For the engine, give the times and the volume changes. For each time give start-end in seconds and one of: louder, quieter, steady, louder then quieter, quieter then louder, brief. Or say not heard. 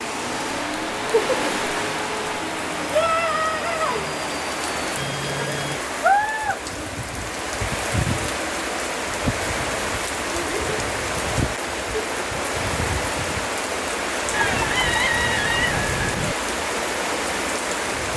0.0-5.8 steady.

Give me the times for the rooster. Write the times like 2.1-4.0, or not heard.
14.3-16.4.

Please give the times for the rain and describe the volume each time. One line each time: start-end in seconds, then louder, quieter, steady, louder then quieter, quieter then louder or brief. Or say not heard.
0.0-18.1 steady.